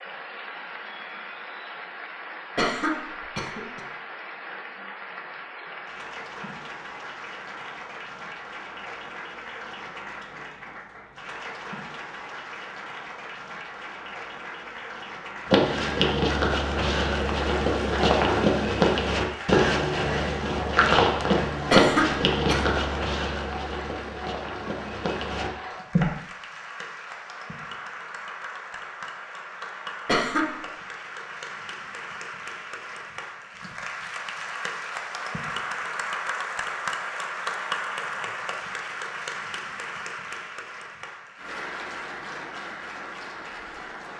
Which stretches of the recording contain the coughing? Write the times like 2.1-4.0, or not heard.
2.5-3.8, 21.7-22.6, 30.1-30.5.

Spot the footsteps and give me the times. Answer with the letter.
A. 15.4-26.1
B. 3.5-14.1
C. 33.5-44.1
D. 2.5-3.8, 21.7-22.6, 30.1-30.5
A.